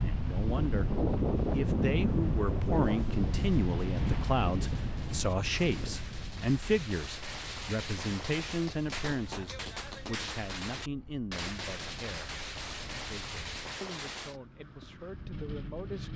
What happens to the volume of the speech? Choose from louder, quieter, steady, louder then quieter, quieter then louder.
quieter.